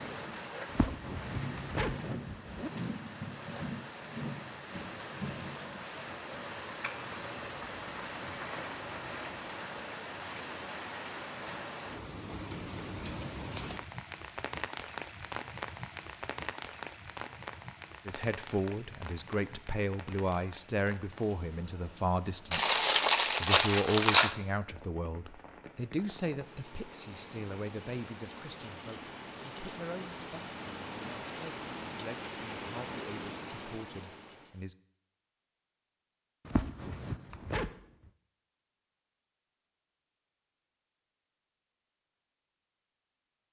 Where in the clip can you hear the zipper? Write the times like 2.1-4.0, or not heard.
0.7-2.7, 36.5-37.8.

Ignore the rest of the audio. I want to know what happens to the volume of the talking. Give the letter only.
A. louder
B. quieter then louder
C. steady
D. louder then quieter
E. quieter
E.